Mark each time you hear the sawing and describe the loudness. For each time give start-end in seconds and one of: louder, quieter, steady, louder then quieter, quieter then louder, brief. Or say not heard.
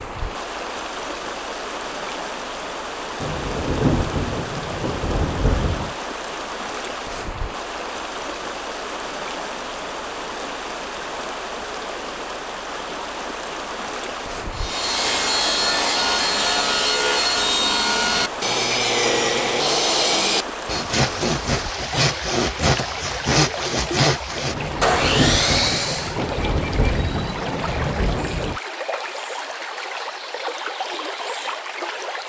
14.6-26.1 steady.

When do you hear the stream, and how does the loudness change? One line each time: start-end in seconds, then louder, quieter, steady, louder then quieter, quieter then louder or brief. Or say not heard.
0.0-32.2 steady.